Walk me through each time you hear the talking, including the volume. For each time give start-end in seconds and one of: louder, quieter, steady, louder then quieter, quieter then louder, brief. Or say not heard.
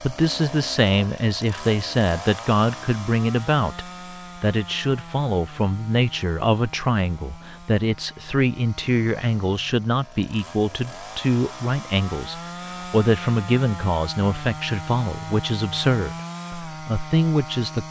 0.0-17.8 steady.